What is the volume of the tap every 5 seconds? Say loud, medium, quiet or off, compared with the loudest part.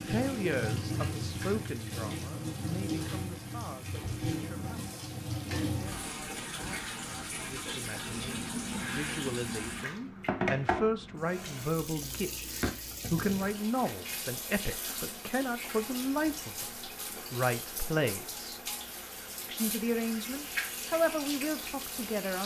loud, loud, loud, medium, loud.